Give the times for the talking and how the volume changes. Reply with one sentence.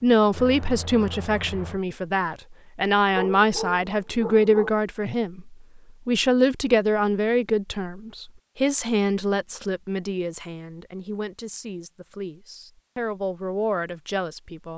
You can hear the talking from 0.0 to 14.7 s, getting quieter.